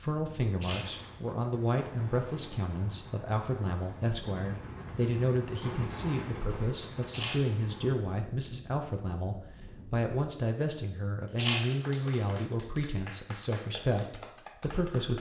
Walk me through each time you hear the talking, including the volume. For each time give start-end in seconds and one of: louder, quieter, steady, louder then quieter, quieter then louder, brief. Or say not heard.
0.0-15.1 steady.